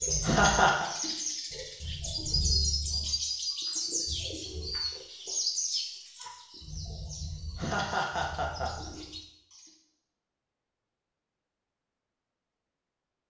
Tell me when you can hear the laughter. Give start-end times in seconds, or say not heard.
0.2-0.9, 7.5-8.9.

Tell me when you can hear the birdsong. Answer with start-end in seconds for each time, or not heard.
0.0-9.7.